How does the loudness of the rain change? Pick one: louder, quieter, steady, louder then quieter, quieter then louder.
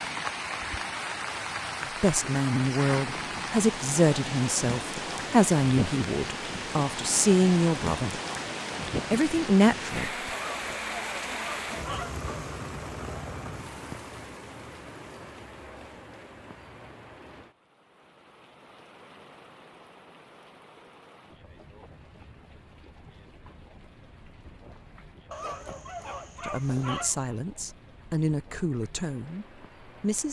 quieter.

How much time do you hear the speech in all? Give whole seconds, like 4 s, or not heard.
11 s.